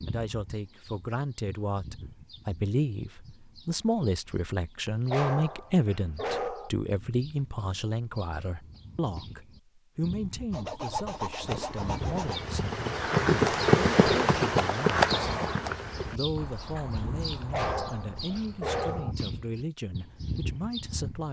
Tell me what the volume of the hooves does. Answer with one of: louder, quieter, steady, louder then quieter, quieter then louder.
louder then quieter.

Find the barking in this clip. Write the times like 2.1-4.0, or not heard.
5.0-6.7, 17.5-19.1.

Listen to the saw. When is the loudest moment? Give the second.
11 s.